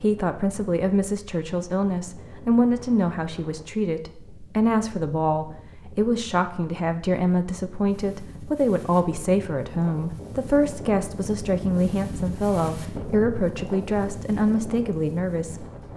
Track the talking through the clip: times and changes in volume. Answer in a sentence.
You can hear the talking from 0.0 to 15.7 s, at a steady volume.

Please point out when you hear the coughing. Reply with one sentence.
You can't hear the coughing here.